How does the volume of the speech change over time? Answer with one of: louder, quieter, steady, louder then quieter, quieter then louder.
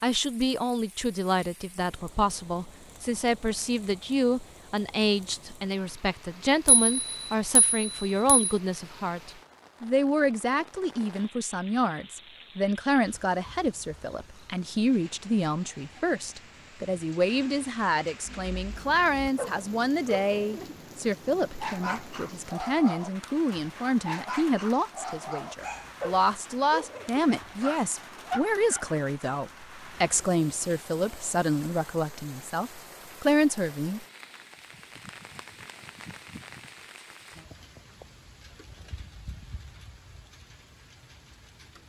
steady.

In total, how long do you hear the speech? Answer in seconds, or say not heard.
34 s.